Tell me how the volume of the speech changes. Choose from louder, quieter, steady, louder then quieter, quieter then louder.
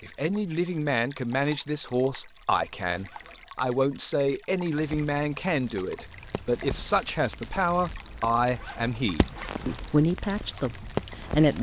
steady.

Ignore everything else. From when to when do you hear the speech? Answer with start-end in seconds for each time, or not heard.
0.0-11.5.